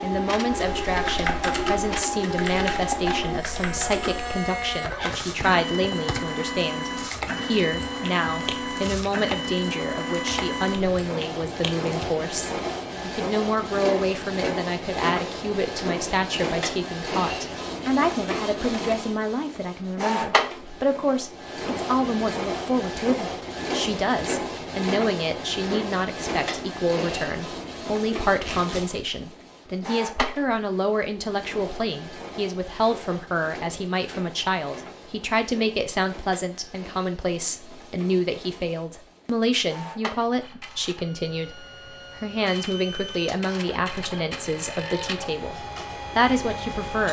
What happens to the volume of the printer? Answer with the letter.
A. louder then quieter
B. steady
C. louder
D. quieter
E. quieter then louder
D.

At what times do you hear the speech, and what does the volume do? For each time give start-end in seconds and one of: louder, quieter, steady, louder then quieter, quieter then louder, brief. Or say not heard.
0.0-47.0 steady.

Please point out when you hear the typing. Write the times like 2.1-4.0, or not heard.
0.5-12.1.